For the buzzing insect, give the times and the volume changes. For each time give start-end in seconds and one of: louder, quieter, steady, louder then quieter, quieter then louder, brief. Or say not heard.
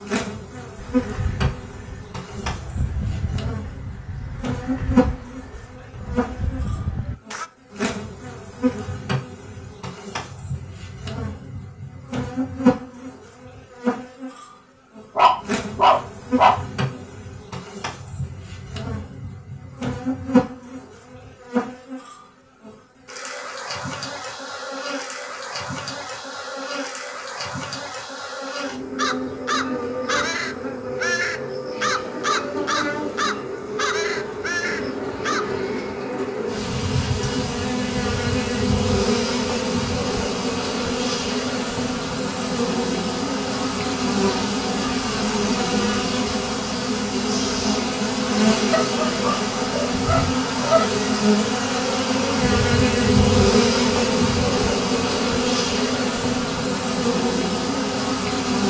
0.0-58.6 louder.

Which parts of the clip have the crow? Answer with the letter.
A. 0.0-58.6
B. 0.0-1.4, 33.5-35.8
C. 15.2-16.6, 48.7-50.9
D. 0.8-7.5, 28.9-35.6
D.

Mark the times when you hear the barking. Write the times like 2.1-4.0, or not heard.
15.2-16.6, 48.7-50.9.